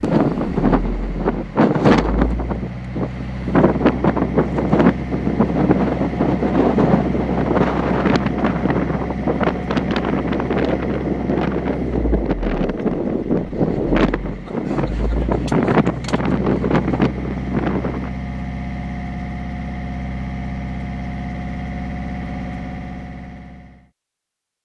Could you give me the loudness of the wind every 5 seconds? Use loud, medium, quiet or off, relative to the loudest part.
loud, loud, loud, loud, off.